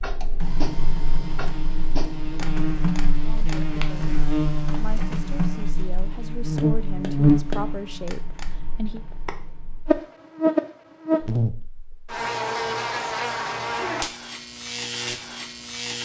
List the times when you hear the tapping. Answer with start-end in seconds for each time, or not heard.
0.0-4.1, 6.5-9.4.